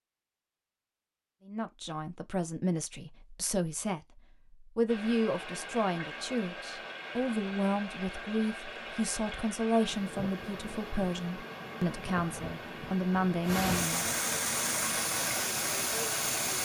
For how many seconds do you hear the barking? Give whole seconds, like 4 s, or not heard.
not heard.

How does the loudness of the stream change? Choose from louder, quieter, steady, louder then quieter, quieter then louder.
louder.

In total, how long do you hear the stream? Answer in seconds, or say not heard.
12 s.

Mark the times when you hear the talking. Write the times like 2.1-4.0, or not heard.
1.4-14.1.